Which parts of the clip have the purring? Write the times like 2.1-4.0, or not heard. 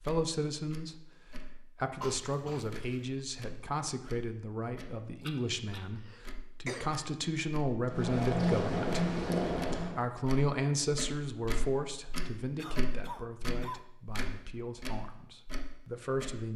7.8-10.0.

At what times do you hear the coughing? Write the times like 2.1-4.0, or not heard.
2.0-3.1, 6.0-7.0, 12.6-13.8.